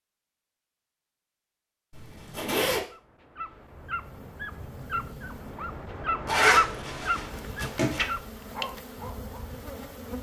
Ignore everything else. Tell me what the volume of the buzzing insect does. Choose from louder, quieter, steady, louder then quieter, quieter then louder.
louder.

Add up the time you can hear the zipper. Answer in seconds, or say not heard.
3 s.